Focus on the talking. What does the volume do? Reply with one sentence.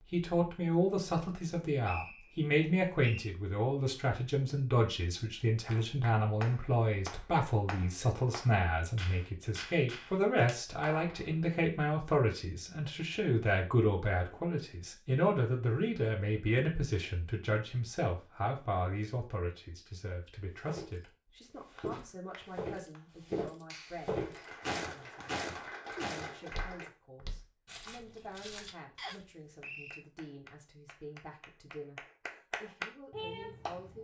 The volume of the talking goes down.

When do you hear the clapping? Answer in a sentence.
You can hear the clapping from 5.7 to 11.6 s, from 21.8 to 26.9 s and from 29.6 to 34.0 s.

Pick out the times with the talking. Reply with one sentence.
You can hear the talking from 0.1 to 34.0 s.